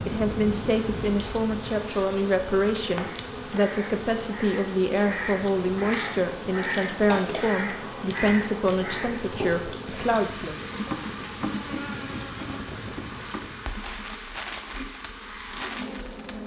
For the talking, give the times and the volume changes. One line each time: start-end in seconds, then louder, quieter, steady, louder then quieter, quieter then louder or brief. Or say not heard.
0.1-10.6 steady.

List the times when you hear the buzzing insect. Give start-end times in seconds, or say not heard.
0.0-16.4.